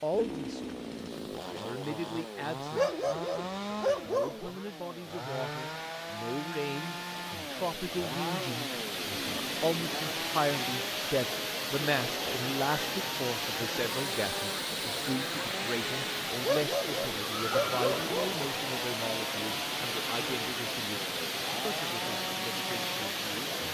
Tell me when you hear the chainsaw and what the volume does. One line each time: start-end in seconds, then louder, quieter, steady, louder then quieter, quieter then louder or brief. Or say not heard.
0.1-23.6 steady.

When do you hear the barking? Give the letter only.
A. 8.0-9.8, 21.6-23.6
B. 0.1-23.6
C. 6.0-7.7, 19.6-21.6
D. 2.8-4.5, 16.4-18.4
D.